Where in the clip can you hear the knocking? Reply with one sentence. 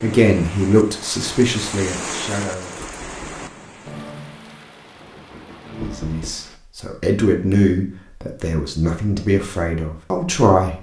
The knocking can be heard from 2.8 to 3.5 s and from 5.8 to 6.4 s.